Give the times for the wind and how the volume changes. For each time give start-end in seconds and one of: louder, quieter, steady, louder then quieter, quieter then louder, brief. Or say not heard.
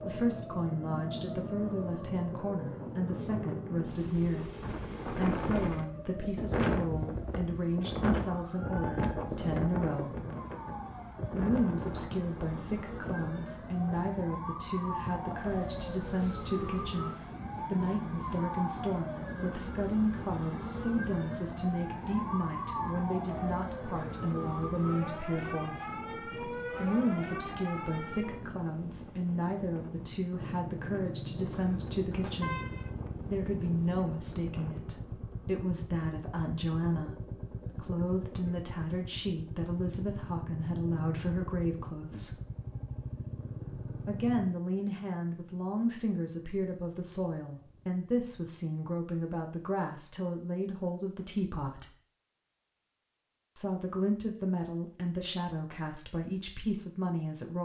0.0-34.9 quieter.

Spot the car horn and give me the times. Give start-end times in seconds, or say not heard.
32.1-32.9.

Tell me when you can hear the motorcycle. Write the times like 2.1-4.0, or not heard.
30.4-48.5.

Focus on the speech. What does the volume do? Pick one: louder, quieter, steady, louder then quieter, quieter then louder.
steady.